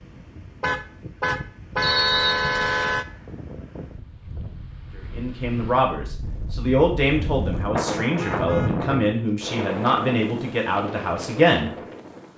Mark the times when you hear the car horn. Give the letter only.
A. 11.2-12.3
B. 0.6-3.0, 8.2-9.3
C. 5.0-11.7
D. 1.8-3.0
B.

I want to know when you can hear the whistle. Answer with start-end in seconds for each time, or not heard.
1.8-3.0.